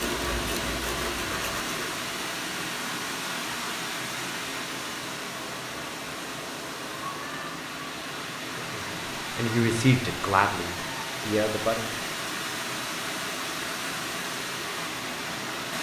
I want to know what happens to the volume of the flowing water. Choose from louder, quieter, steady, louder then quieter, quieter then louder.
steady.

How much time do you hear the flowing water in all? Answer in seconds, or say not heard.
16 s.